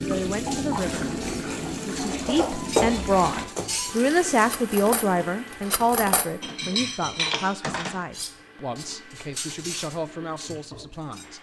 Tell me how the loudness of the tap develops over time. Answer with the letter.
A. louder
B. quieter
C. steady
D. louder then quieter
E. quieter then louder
B.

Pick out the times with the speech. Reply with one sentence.
You can hear the speech from 0.0 to 1.1 s and from 1.9 to 11.3 s.